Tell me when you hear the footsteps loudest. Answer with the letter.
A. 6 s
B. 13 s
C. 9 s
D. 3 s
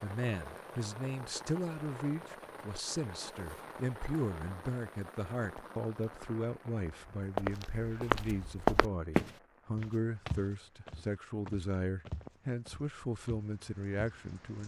C.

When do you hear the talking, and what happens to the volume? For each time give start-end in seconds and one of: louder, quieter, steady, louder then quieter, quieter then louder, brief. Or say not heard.
0.0-14.6 steady.